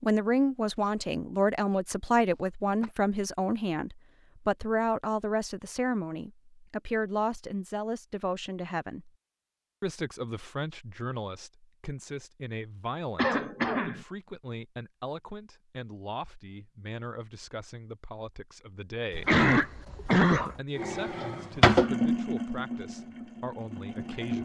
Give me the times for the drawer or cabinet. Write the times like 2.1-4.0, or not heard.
not heard.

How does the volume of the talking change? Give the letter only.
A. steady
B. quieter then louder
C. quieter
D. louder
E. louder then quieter
C.